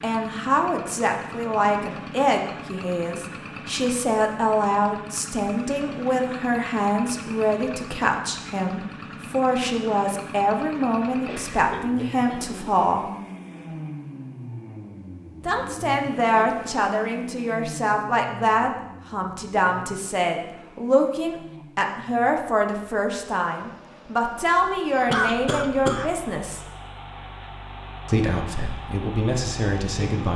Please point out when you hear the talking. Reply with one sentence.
The talking can be heard from 0.0 to 13.1 s, from 15.4 to 26.6 s and from 28.1 to 30.3 s.